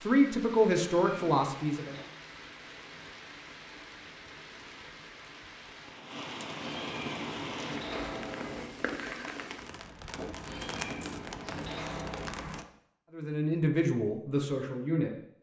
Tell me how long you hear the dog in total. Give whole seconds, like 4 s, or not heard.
not heard.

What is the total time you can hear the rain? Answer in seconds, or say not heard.
13 s.